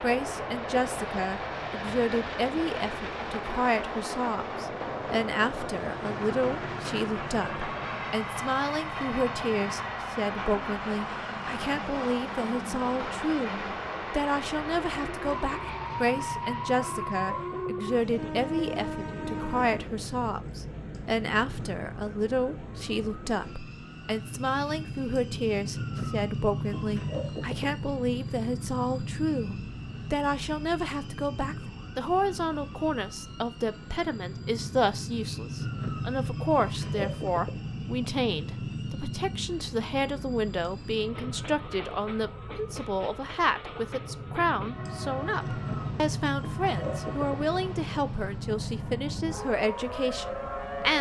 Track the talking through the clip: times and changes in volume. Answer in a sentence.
The talking can be heard from 0.0 to 50.9 s, at a steady volume.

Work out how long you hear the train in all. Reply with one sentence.
You can hear the train for 51 seconds altogether.